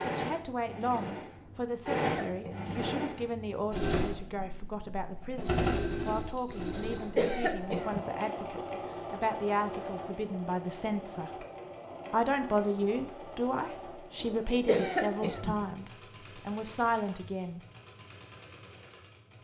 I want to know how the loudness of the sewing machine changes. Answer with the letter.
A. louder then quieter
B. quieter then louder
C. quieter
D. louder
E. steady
C.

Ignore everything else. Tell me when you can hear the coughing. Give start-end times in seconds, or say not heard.
1.4-2.8, 6.7-8.0, 14.2-15.7.